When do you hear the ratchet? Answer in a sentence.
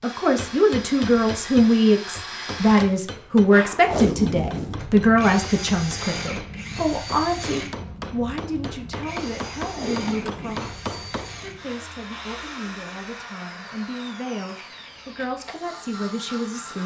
You can't hear the ratchet here.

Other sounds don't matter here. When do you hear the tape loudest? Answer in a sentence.
The volume of the tape peaks at 4 seconds.